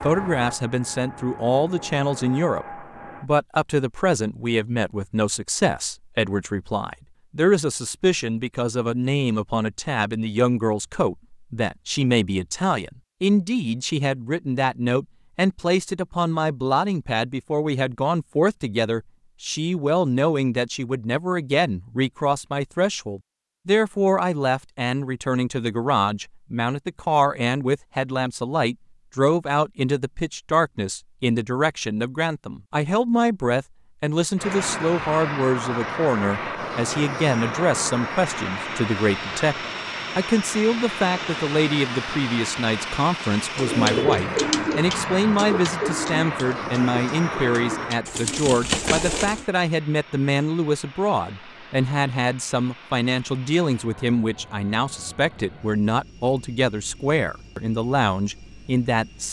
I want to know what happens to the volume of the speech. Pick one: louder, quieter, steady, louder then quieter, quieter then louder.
steady.